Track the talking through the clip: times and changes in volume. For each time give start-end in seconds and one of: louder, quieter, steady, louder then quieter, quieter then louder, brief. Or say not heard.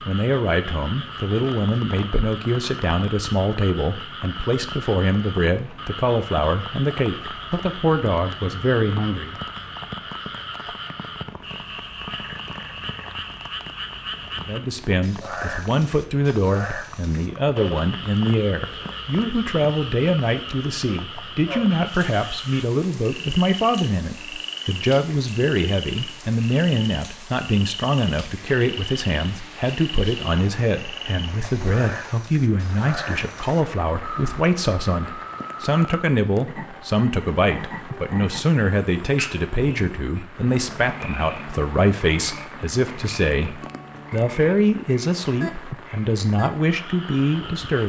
0.1-9.4 steady
14.3-47.8 steady.